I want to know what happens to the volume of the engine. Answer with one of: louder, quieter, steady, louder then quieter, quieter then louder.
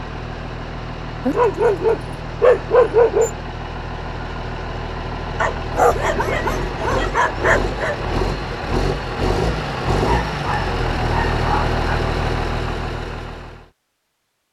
louder.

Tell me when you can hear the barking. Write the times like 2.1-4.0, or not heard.
1.2-3.3, 5.4-8.0, 9.9-11.8.